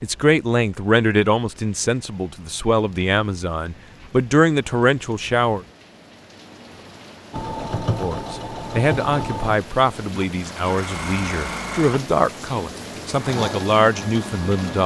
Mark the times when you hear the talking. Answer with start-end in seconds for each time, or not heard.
0.0-5.6, 8.0-14.8.